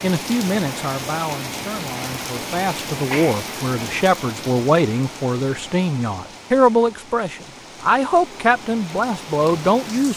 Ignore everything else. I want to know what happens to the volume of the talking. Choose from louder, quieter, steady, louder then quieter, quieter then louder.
louder.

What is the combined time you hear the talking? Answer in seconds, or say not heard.
10 s.